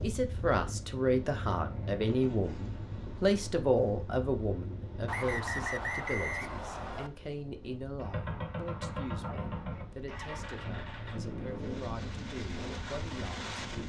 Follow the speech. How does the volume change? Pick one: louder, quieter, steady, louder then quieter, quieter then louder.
quieter.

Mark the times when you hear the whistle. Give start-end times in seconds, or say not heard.
5.0-7.1.